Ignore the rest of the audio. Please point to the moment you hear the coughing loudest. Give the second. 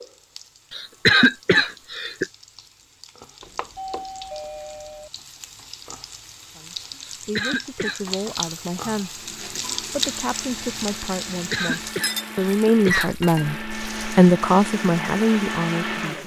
1 s.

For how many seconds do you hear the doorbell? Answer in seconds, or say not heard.
2 s.